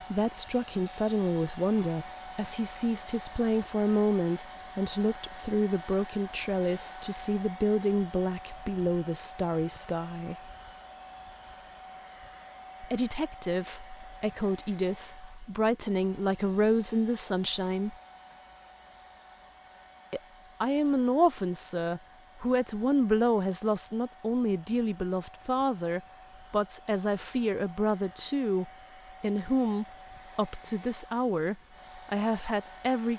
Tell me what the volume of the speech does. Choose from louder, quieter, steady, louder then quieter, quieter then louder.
steady.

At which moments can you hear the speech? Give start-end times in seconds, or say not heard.
0.1-10.5, 12.8-17.9, 20.1-33.1.